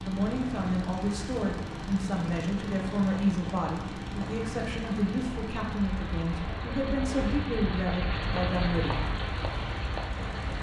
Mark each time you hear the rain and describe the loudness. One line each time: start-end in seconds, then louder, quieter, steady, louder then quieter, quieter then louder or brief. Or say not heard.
0.0-10.5 louder.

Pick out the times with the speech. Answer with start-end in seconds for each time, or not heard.
0.0-9.0.